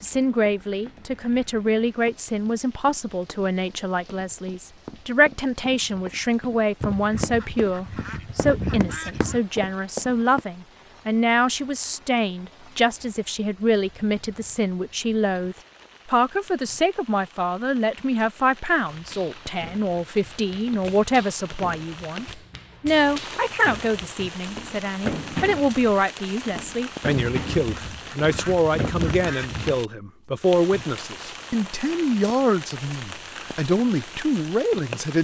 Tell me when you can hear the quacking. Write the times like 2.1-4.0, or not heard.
6.8-9.4, 27.4-29.8.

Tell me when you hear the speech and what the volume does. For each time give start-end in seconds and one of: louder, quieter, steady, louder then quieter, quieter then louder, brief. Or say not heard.
0.0-35.1 steady.